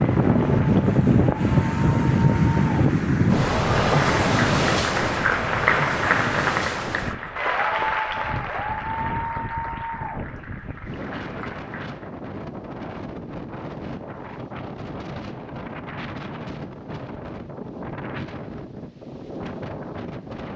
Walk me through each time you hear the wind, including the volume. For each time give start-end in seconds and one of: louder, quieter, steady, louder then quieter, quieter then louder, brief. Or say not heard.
0.0-20.5 quieter.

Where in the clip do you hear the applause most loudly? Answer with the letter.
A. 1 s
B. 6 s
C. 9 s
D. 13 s
B.